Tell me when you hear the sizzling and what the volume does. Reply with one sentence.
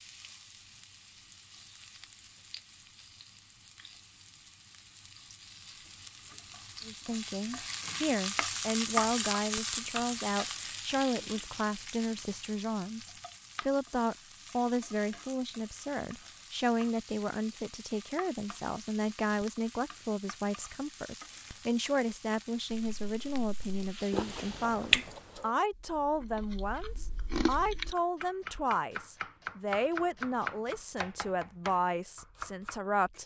The sizzling can be heard from 0.0 to 24.7 s, getting louder then quieter.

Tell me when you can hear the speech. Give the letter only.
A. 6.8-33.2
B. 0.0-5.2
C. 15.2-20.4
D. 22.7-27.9
A.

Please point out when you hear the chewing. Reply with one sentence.
The chewing can be heard from 22.7 to 27.9 s.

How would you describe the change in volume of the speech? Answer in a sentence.
The volume of the speech stays about the same.